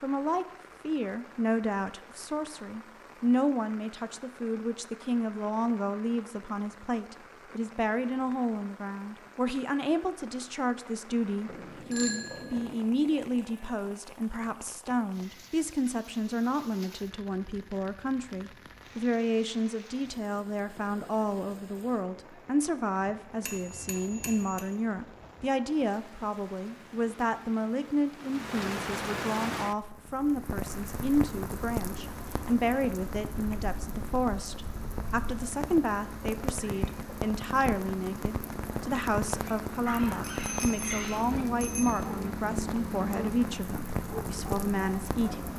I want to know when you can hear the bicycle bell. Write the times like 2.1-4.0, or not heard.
11.4-12.7, 23.4-24.6, 40.2-42.0.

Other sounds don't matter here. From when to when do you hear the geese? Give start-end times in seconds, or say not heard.
not heard.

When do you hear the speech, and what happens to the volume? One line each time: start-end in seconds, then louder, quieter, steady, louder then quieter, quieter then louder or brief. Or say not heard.
0.0-45.5 steady.